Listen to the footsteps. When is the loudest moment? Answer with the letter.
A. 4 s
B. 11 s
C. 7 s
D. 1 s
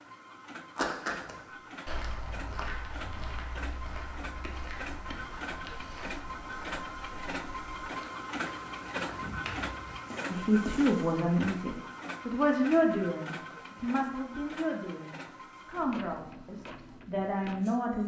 D.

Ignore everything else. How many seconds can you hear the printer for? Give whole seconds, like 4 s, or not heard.
18 s.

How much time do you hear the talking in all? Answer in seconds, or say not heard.
8 s.